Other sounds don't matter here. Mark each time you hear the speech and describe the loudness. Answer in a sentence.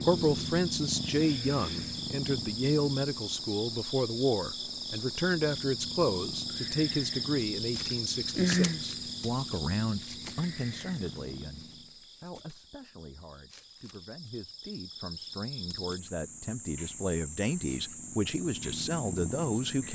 The speech can be heard from 0.0 to 19.8 s, getting quieter then louder.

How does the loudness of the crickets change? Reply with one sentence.
The volume of the crickets goes down, then up.